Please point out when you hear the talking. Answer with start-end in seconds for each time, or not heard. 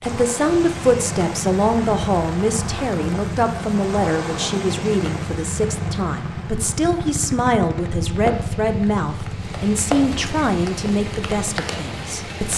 0.0-12.5.